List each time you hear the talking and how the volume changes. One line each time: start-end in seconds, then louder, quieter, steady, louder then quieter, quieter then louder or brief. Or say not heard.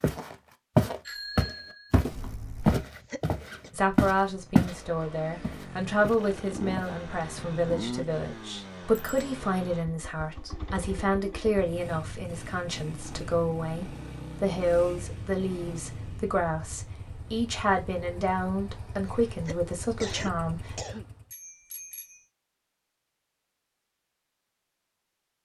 3.7-20.8 steady.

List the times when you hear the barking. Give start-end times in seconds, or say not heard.
not heard.